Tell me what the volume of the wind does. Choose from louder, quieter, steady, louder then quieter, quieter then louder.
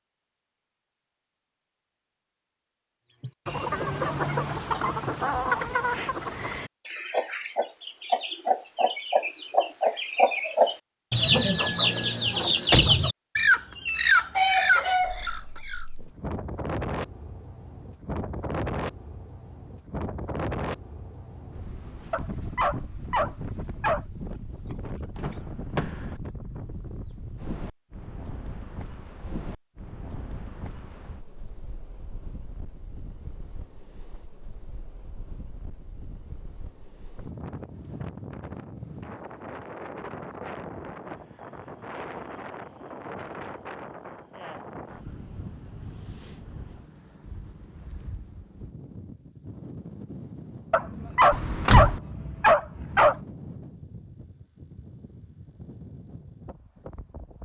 quieter.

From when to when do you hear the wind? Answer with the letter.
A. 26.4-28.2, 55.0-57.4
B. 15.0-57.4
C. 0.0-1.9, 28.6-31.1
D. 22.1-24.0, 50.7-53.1
B.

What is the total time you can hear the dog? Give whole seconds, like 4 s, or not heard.
4 s.